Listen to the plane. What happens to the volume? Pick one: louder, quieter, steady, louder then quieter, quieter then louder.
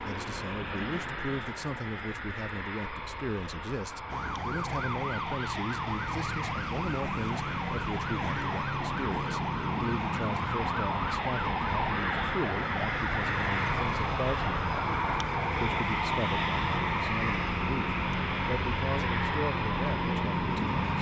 louder.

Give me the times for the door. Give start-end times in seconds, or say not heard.
not heard.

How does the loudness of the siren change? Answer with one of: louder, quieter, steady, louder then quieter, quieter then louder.
steady.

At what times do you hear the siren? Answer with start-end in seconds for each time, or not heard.
4.0-20.9.